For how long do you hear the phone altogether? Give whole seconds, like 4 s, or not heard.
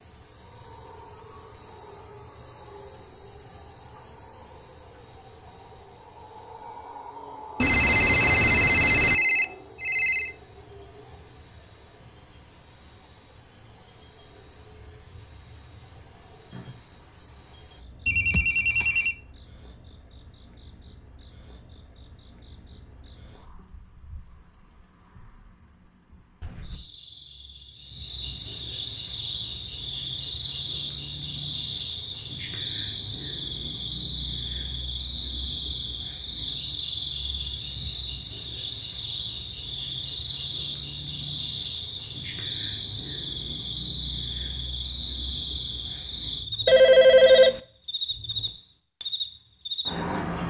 5 s.